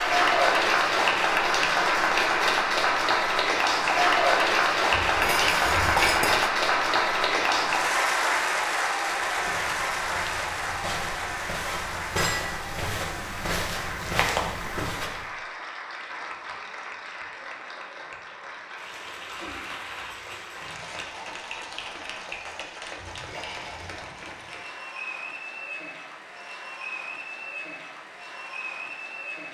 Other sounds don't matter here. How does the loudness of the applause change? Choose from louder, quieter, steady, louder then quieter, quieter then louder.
quieter.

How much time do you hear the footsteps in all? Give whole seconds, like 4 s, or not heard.
6 s.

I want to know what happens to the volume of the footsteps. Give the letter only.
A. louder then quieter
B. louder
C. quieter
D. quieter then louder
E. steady
B.